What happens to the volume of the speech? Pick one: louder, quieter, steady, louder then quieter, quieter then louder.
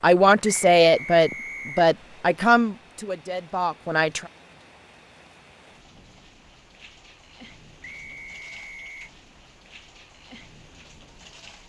quieter.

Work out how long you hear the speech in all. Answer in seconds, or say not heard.
4 s.